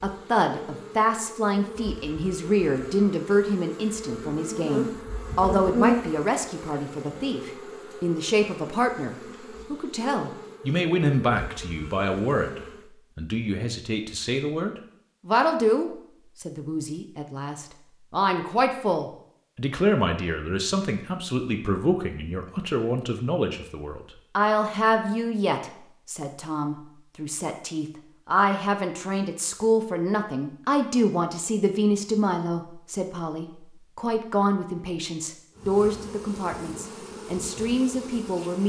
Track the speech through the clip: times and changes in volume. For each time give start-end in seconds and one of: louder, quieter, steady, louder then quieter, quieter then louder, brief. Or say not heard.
0.0-38.6 steady.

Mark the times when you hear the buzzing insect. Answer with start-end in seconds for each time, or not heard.
0.0-12.9, 35.5-38.6.